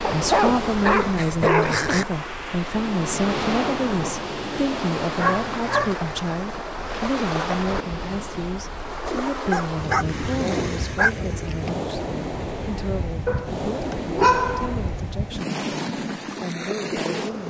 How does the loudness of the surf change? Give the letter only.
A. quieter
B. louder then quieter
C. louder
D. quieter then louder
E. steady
E.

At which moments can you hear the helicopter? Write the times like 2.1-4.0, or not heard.
not heard.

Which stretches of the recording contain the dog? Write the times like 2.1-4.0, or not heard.
0.0-2.0, 5.2-6.0, 9.5-11.1, 13.2-15.0.